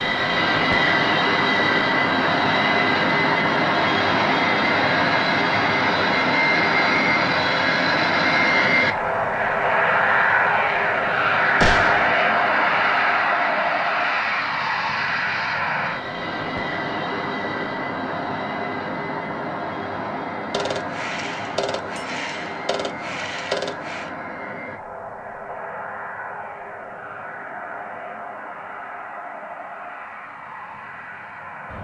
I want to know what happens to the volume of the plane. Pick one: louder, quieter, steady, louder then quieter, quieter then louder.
quieter.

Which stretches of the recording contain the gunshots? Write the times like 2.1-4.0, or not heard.
11.6-12.1, 20.5-24.1.